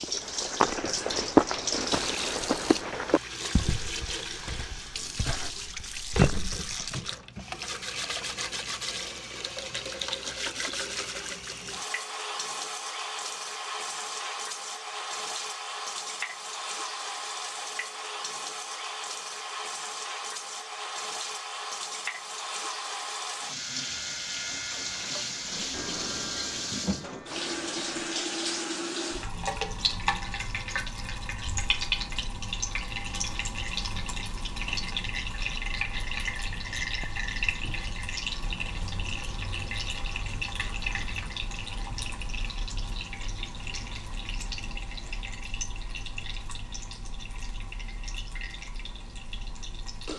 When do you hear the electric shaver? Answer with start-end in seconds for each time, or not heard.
23.7-28.1.